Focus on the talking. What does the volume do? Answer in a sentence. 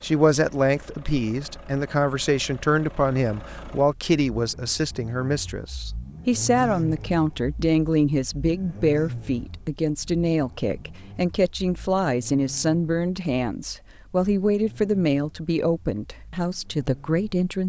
The volume of the talking stays about the same.